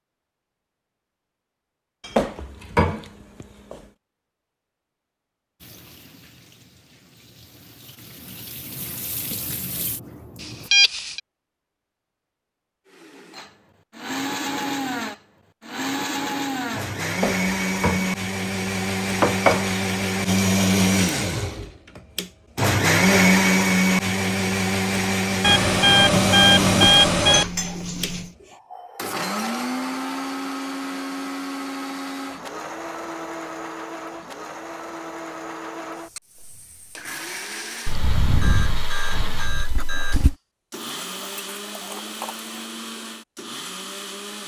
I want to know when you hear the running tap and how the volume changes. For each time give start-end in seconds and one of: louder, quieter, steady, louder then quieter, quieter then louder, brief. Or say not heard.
5.6-10.7 louder.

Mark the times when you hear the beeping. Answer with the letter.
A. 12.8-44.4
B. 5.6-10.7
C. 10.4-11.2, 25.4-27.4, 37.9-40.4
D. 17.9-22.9
C.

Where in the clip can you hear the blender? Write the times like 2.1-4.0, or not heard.
12.8-44.4.